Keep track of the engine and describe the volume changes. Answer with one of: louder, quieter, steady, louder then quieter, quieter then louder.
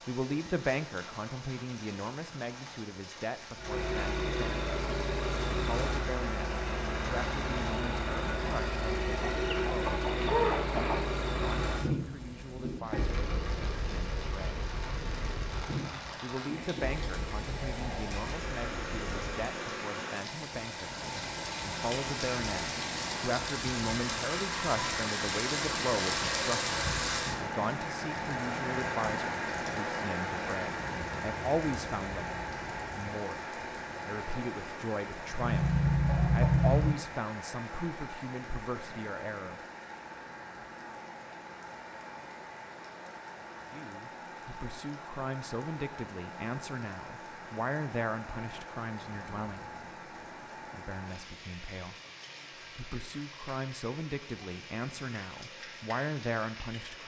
quieter.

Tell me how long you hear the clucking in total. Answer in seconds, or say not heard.
3 s.